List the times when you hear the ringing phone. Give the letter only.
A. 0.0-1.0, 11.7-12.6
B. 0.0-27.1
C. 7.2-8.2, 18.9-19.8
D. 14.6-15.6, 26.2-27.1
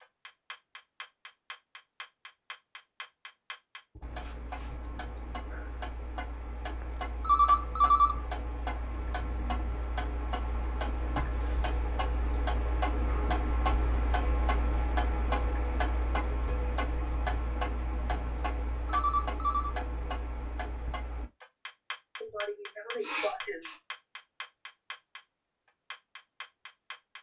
C.